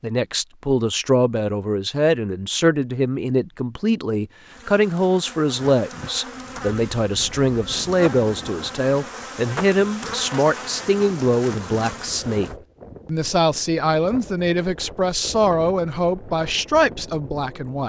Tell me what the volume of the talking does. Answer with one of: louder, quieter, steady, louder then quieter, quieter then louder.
steady.